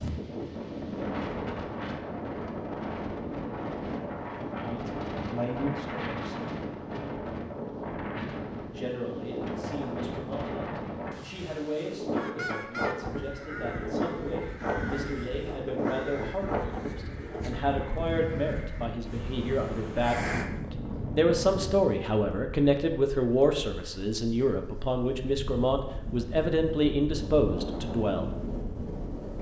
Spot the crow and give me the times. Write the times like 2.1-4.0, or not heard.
12.2-20.5.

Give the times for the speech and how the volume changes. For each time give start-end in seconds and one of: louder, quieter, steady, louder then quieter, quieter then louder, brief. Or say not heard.
4.6-6.3 brief
8.7-28.3 louder.